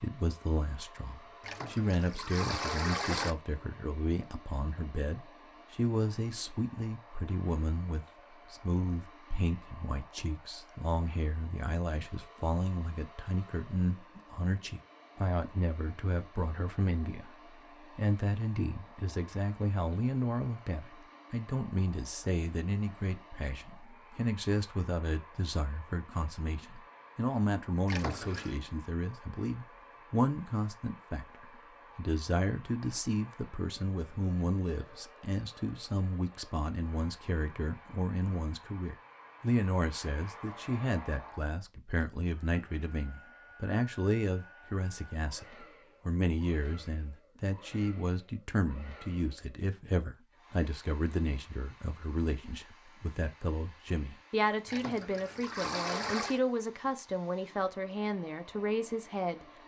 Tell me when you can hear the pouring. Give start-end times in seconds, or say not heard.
1.4-3.4, 27.9-28.6, 54.6-56.4.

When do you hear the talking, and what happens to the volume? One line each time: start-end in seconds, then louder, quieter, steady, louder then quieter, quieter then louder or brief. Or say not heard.
0.0-59.4 steady.